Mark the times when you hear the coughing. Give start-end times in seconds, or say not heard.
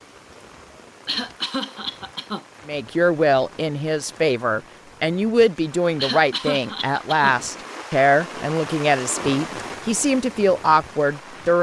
1.1-2.5, 6.0-7.3.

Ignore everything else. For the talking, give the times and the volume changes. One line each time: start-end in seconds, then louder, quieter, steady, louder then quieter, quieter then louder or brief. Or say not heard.
2.6-11.5 steady.